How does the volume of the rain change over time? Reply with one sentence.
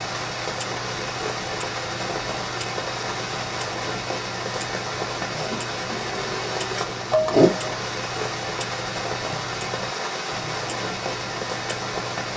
The loudness of the rain stays about the same.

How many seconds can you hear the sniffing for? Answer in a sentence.
You can hear the sniffing for 2 seconds altogether.